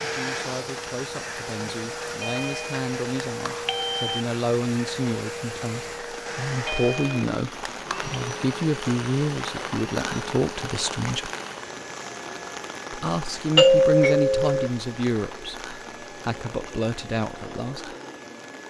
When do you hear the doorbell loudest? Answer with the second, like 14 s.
14 s.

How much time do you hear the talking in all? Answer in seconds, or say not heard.
16 s.